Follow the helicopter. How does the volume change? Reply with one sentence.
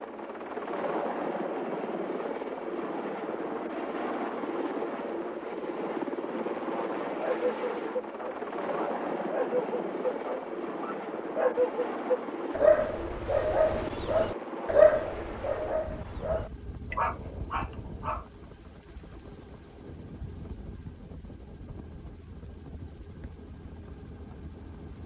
The volume of the helicopter goes down.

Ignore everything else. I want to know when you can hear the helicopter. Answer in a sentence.
You can hear the helicopter from 0.0 to 25.0 s.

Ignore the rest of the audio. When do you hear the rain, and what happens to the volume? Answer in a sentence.
You can't hear the rain here.